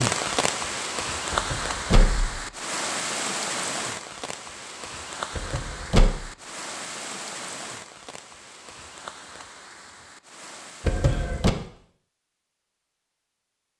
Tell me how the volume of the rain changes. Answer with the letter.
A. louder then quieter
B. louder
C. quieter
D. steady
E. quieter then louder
C.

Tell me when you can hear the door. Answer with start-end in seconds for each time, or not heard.
1.3-2.5, 5.3-6.2, 10.8-11.6.